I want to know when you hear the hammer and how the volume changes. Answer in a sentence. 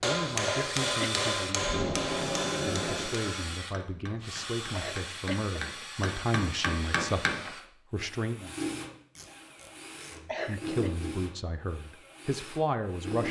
You can hear the hammer from 0.0 to 7.5 s, getting quieter then louder.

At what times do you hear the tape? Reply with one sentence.
The tape can be heard from 1.6 to 3.1 s and from 9.2 to 10.2 s.